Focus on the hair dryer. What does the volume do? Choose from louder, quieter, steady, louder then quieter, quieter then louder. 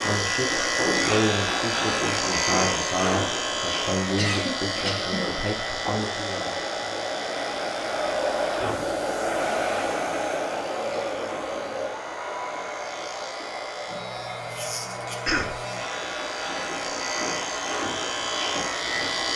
louder then quieter.